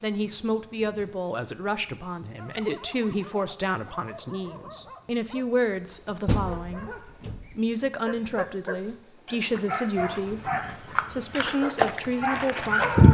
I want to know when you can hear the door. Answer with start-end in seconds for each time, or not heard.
6.2-7.5.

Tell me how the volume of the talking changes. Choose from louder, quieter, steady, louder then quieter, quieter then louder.
steady.